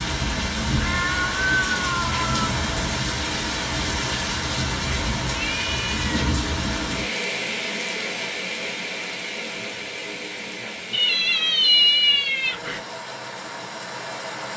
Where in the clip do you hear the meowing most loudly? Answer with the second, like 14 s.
12 s.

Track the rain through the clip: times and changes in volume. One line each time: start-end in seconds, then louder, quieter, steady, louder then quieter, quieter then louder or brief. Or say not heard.
0.0-14.5 quieter.